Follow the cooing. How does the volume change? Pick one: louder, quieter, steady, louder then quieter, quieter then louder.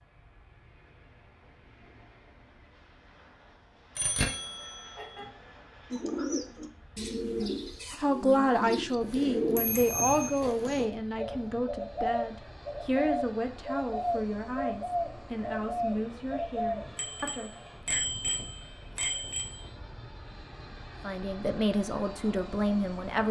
steady.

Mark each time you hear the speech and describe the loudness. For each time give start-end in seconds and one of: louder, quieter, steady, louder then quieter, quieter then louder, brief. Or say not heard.
8.0-17.6 quieter
21.0-23.2 brief.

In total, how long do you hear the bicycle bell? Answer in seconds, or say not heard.
5 s.